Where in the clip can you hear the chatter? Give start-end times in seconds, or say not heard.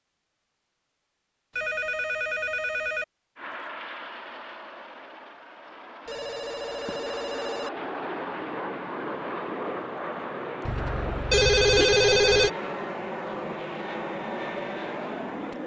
not heard.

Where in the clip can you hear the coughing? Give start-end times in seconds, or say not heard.
not heard.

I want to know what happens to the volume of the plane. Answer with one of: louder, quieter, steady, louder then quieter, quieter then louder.
louder.